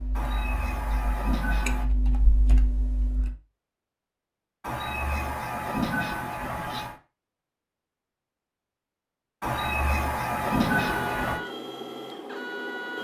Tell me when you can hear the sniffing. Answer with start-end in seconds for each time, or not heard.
0.1-1.9, 4.6-7.0, 9.4-11.4.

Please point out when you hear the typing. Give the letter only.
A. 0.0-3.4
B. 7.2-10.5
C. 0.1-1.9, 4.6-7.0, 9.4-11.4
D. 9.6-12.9
A.